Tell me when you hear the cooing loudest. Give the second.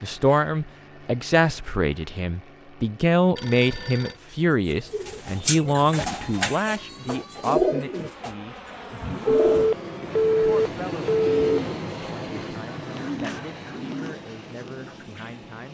8 s.